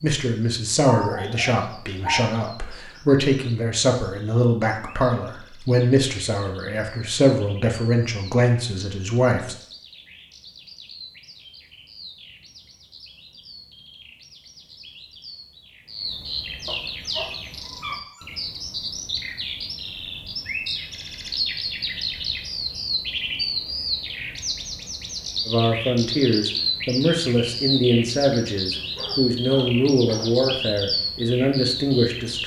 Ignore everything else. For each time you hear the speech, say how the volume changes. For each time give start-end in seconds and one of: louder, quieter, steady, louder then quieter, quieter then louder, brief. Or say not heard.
0.0-9.6 steady
25.4-32.4 steady.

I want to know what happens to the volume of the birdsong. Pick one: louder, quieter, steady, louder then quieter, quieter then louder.
louder.